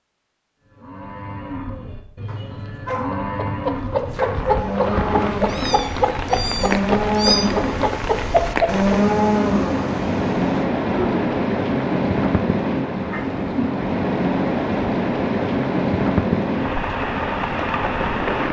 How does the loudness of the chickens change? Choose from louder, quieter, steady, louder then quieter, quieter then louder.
steady.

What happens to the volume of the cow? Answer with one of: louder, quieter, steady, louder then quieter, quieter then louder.
louder.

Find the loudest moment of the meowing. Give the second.
7 s.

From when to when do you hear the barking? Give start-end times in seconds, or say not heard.
2.2-3.2, 4.0-4.7.